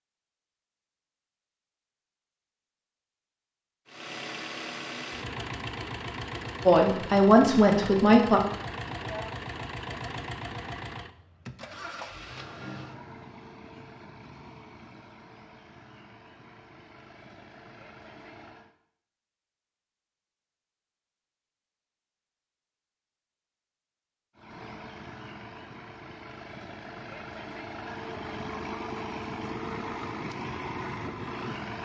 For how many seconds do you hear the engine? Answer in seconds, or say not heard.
22 s.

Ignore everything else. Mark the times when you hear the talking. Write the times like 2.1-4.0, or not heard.
6.7-8.4.